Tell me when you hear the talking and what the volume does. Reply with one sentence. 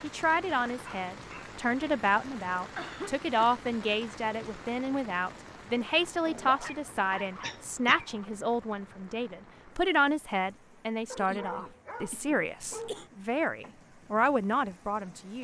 The talking can be heard from 0.0 to 15.3 s, at a steady volume.